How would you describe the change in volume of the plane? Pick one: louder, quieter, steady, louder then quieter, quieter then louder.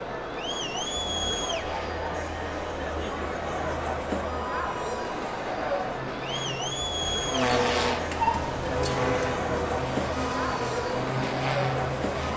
louder.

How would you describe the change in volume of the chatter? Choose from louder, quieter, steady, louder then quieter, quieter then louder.
steady.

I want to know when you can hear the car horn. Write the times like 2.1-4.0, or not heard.
8.1-9.4.